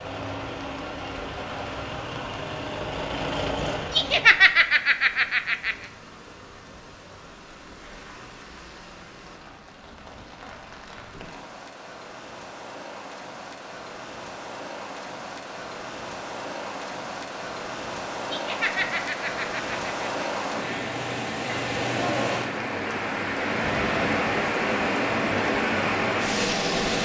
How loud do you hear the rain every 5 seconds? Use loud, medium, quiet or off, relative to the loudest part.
quiet, quiet, quiet, medium, loud, loud.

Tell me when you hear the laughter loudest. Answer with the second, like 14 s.
4 s.